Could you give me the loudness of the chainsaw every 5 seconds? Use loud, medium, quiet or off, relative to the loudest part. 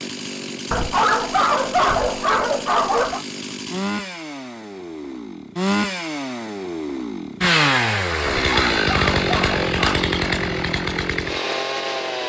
medium, loud, loud.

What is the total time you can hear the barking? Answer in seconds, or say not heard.
4 s.